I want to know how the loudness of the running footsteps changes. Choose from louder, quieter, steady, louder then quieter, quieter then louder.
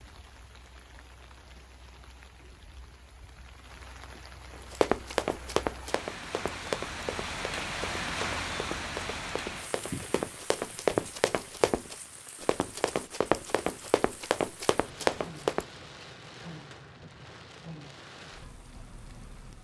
quieter then louder.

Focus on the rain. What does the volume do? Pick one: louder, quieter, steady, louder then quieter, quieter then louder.
louder then quieter.